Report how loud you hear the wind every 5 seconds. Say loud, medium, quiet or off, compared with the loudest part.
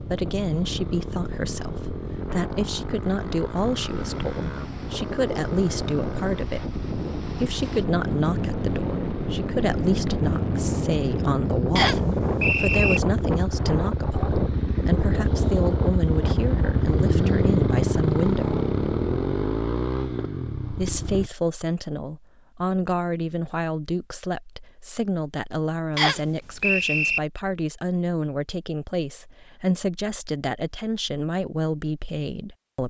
medium, loud, loud, loud, off, off, off.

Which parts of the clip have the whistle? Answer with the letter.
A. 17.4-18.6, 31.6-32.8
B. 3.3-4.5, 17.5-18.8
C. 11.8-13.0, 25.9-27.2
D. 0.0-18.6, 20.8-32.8
C.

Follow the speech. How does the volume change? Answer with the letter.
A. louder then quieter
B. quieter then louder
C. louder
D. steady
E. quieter
D.